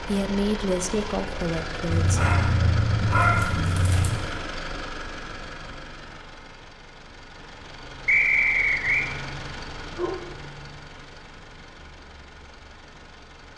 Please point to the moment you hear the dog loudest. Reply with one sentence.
The loudest moment of the dog is at 3 seconds.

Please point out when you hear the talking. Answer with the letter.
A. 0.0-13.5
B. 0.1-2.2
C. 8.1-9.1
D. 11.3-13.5
B.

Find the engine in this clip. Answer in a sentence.
The engine can be heard from 0.0 to 13.5 s.